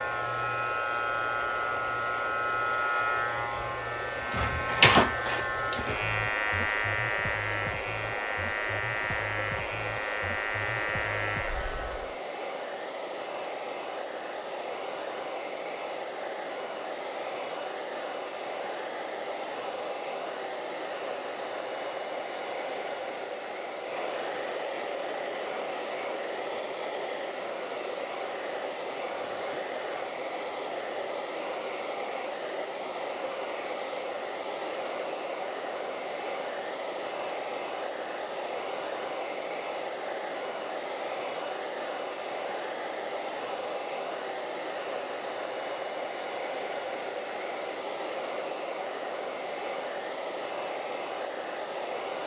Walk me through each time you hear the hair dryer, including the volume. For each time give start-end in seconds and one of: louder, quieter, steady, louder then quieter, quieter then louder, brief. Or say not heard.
0.0-52.2 steady.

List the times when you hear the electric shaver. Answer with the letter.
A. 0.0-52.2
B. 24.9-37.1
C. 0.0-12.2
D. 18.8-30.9
C.